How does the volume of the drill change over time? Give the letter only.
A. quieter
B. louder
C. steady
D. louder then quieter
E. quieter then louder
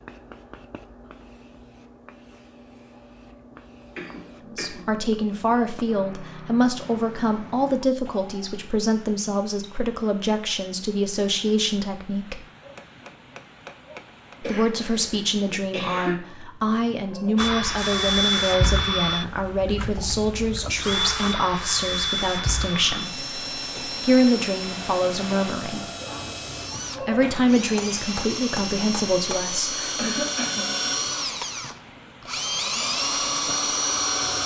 E.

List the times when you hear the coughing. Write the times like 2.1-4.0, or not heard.
4.0-4.8, 14.4-16.1, 29.9-30.9.